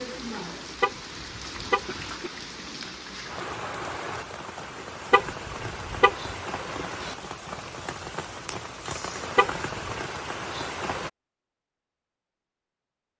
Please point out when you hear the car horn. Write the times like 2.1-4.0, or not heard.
0.8-2.0, 5.1-6.3, 9.3-9.9.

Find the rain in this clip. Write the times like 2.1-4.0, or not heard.
0.0-11.1.